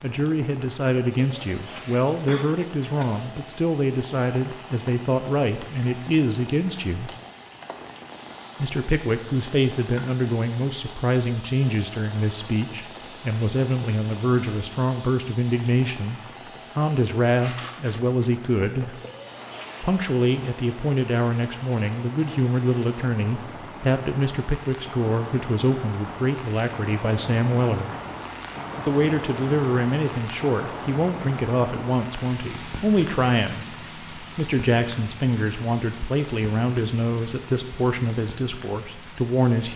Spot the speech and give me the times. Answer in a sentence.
You can hear the speech from 0.0 to 7.1 s, from 8.6 to 19.0 s, from 19.8 to 27.9 s and from 28.9 to 39.7 s.